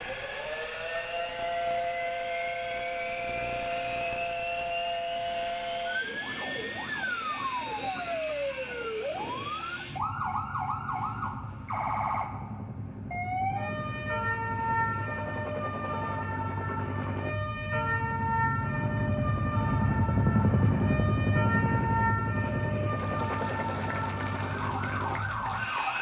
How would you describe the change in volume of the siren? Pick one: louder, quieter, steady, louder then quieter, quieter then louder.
steady.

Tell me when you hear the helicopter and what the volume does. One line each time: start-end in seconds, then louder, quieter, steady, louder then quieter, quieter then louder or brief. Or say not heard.
0.0-25.9 louder.